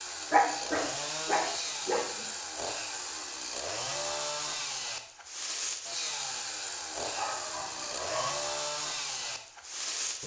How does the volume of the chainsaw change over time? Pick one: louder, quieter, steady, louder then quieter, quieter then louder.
steady.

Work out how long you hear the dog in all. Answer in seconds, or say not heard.
3 s.